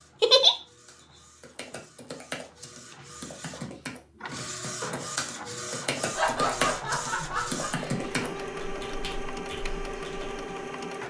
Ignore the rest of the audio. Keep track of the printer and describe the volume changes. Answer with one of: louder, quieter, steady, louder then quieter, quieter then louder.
louder.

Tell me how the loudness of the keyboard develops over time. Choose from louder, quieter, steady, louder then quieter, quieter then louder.
louder then quieter.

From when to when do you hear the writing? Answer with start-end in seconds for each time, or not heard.
not heard.